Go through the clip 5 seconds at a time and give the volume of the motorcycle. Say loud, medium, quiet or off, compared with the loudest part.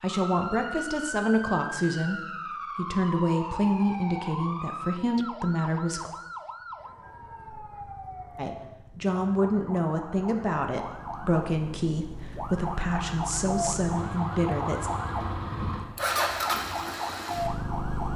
off, quiet, medium, loud.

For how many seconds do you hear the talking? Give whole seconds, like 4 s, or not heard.
13 s.